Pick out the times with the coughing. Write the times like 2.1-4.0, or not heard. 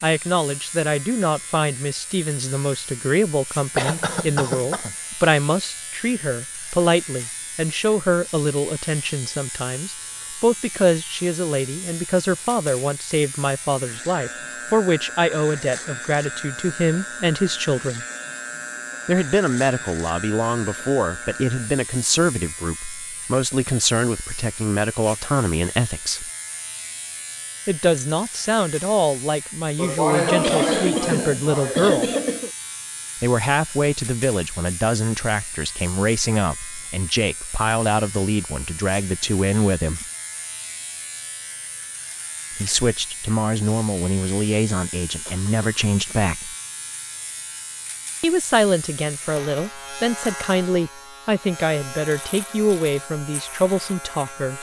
3.8-5.0, 29.8-32.5, 45.2-46.3.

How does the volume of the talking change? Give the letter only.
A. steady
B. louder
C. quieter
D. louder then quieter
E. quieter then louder
A.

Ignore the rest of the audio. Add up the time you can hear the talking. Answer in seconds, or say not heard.
47 s.